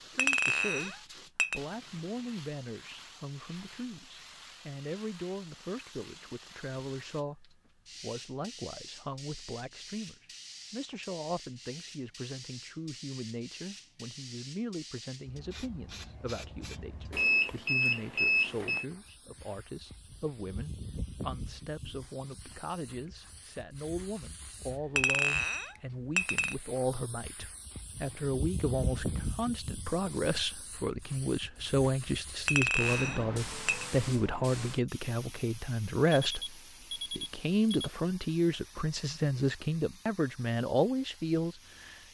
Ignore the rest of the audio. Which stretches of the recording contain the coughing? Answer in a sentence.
The coughing can't be heard in this clip.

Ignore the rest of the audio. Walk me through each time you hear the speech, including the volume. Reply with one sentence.
You can hear the speech from 0.0 to 42.0 s, getting louder.